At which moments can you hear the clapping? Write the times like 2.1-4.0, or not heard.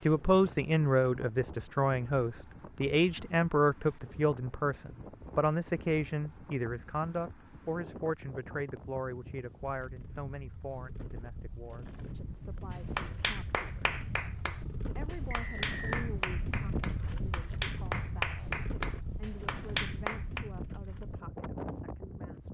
12.7-20.4.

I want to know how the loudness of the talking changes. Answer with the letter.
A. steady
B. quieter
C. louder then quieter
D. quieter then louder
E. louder
B.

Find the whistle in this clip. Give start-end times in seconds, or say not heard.
15.3-16.1.